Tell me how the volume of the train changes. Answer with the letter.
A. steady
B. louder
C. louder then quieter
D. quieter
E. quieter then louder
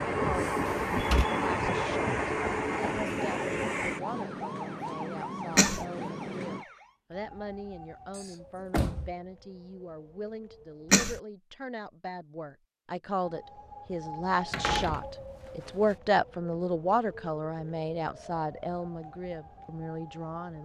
D.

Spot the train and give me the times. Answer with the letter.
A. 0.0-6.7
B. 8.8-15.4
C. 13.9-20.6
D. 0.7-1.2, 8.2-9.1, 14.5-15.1
A.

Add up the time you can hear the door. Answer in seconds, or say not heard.
2 s.